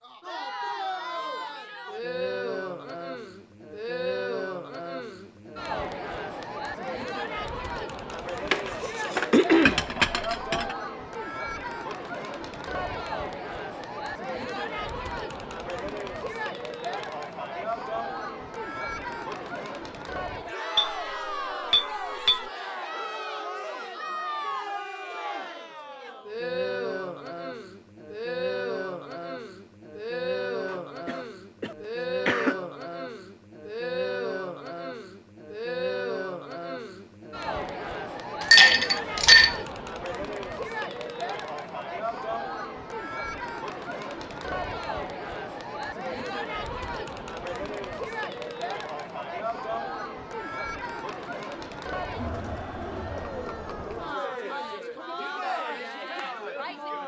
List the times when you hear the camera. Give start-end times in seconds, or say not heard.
not heard.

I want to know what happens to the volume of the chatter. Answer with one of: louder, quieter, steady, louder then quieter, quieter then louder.
steady.